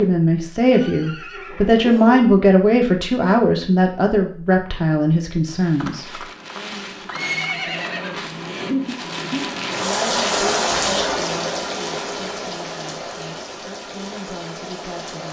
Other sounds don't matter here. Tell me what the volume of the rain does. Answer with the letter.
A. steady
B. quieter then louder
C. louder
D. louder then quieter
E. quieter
D.